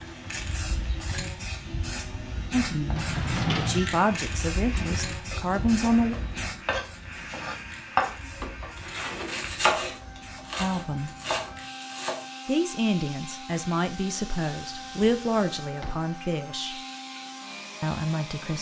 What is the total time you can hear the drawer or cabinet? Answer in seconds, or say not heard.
4 s.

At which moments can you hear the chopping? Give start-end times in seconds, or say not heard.
4.7-12.2.